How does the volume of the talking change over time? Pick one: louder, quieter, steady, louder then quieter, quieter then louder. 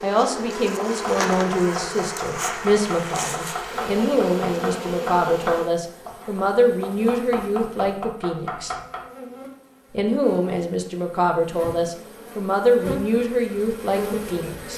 steady.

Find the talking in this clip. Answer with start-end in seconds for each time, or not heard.
0.0-8.8, 9.9-14.7.